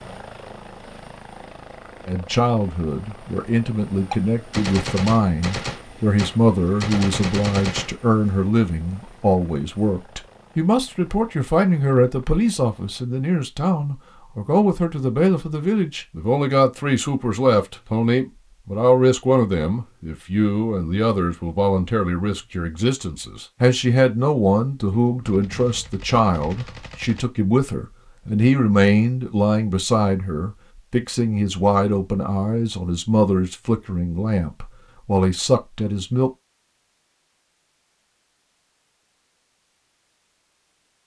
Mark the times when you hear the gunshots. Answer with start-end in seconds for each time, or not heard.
4.1-8.1, 25.2-27.2.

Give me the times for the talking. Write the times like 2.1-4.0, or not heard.
2.0-36.3.